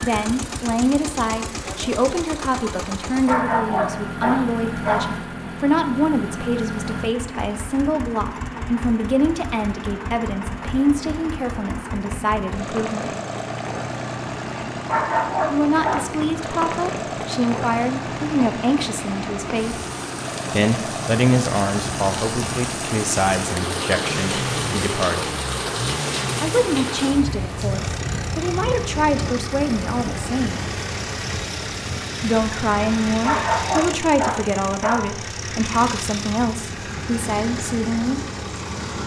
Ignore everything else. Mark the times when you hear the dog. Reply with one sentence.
You can hear the dog from 3.2 to 5.2 s, from 14.8 to 16.1 s and from 33.2 to 35.1 s.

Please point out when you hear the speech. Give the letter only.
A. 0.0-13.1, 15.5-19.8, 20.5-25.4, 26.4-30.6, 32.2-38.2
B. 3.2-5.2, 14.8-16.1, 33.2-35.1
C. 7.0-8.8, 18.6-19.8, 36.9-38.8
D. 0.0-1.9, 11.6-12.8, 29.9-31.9
A.